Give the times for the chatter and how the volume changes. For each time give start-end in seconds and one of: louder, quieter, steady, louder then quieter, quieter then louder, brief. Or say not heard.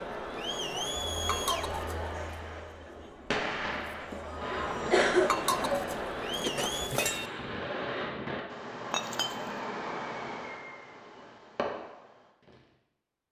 0.0-6.9 quieter then louder.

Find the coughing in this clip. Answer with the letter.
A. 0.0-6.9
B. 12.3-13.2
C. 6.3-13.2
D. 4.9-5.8
D.